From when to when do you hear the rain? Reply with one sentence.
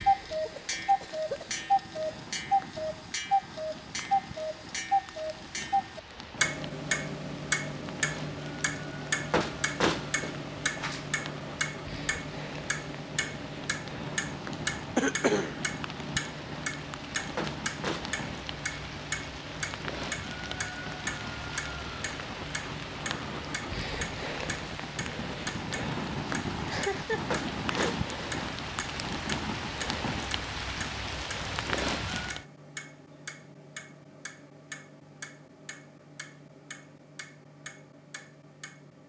You can hear the rain from 0.0 to 32.5 s.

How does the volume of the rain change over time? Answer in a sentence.
The volume of the rain goes up.